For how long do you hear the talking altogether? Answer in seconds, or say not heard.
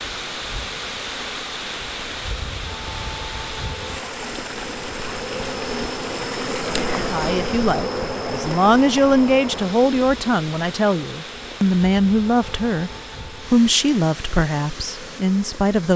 9 s.